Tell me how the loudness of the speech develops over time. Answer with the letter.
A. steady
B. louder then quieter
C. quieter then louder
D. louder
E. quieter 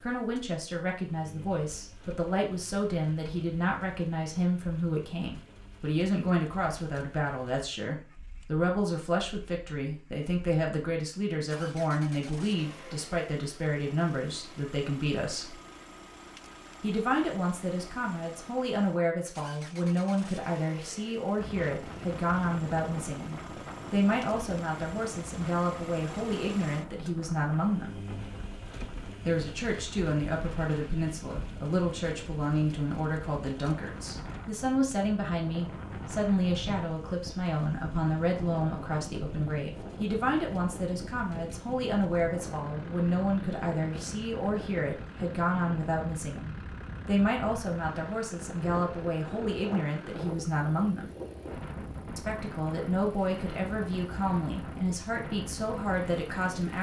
A.